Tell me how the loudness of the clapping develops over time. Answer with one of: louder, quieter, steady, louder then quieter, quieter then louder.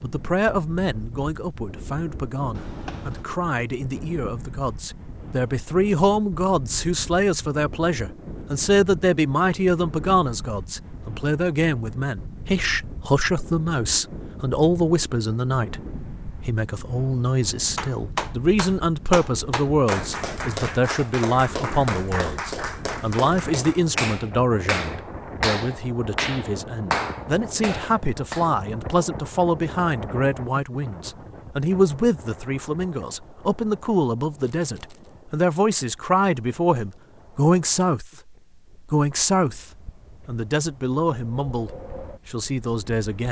steady.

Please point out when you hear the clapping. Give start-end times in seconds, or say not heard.
17.8-28.5.